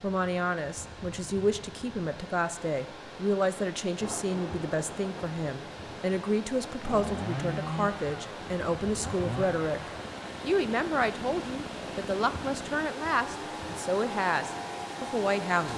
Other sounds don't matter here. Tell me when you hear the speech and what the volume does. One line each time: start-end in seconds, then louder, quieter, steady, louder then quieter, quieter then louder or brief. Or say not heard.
0.0-15.7 steady.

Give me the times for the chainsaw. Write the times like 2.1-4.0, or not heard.
6.8-15.7.